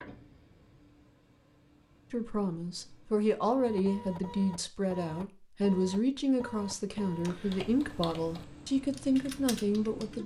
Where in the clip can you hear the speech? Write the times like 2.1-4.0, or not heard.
2.1-10.2.